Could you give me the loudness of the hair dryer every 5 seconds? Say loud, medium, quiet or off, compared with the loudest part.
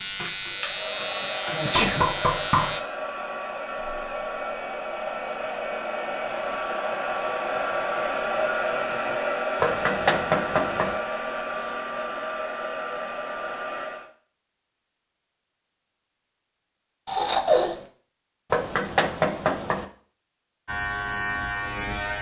medium, loud, loud, off, off.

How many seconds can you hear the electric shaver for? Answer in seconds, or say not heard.
4 s.